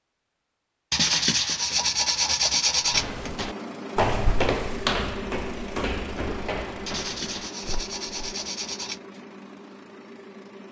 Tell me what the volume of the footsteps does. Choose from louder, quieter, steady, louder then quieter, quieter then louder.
quieter.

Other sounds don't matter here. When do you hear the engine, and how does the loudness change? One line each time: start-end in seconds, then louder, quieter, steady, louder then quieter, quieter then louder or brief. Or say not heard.
3.0-10.6 quieter.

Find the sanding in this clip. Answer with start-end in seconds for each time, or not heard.
0.9-3.5, 6.8-9.0.